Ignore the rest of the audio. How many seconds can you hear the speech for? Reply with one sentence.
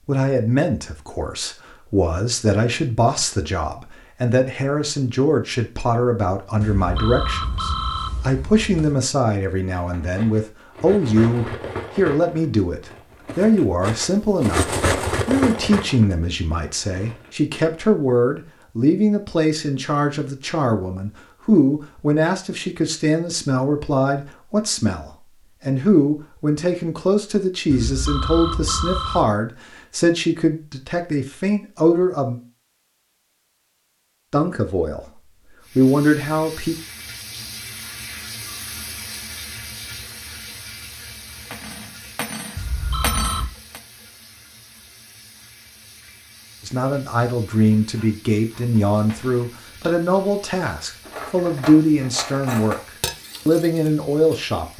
The speech can be heard for 43 seconds in total.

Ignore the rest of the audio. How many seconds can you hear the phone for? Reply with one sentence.
The phone can be heard for 5 seconds in total.